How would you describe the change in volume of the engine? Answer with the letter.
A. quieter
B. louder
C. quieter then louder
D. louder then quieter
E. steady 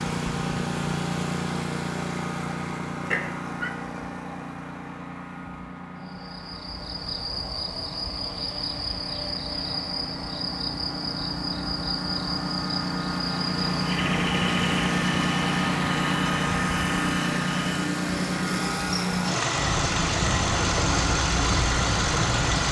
C.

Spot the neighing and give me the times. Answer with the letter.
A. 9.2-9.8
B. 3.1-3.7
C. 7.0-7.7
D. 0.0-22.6
B.